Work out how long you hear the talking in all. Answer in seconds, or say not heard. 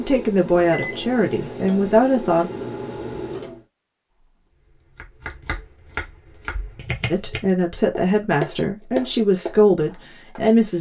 6 s.